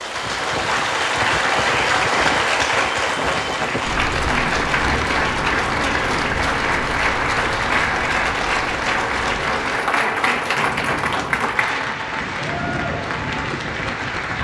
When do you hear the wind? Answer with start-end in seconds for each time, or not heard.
0.0-14.3.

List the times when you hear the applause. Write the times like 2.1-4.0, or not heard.
0.0-14.3.